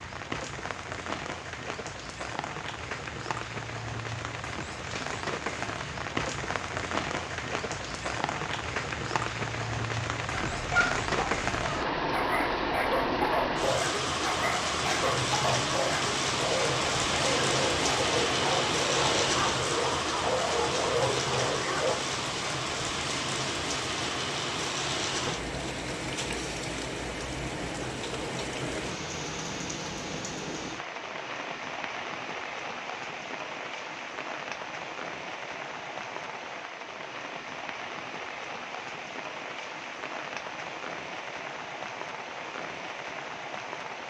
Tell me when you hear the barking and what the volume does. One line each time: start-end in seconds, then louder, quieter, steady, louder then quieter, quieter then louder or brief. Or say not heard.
10.3-21.9 steady.